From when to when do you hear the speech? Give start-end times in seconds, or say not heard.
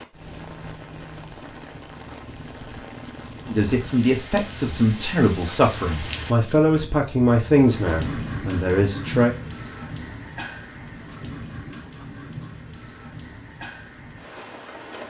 3.5-9.3.